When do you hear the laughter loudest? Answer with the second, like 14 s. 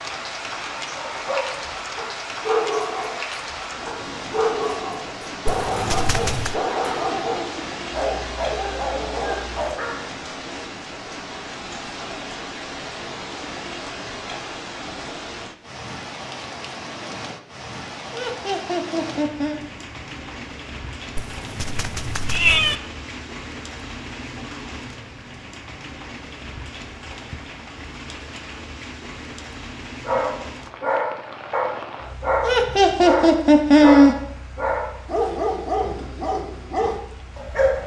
34 s.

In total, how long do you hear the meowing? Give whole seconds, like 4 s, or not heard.
3 s.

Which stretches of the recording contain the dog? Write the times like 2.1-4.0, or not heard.
0.9-10.1, 30.1-37.8.